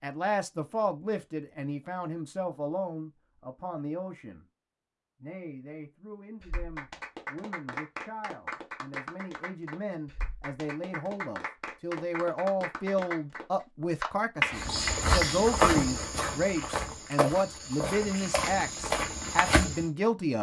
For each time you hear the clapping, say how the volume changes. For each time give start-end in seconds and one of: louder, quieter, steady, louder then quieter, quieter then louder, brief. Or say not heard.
6.4-15.5 louder.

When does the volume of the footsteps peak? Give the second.
16 s.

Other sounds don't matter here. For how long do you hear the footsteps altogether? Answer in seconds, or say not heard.
5 s.